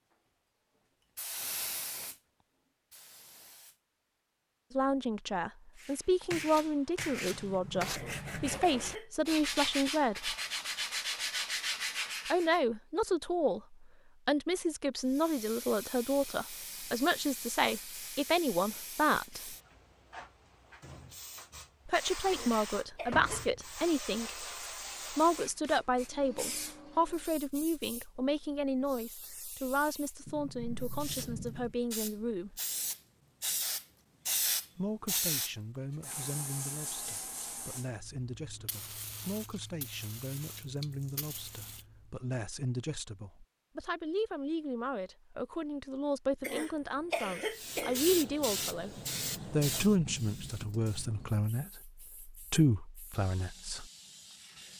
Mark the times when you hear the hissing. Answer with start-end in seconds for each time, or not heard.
0.1-3.8, 15.0-42.2, 47.5-54.7.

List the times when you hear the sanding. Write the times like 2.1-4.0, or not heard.
5.8-12.6.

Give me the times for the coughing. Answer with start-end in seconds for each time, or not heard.
7.9-9.3, 22.3-23.4, 46.4-48.0.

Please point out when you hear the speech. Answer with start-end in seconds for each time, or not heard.
4.7-10.3, 12.2-19.6, 21.9-24.4, 25.1-32.6, 34.8-53.9.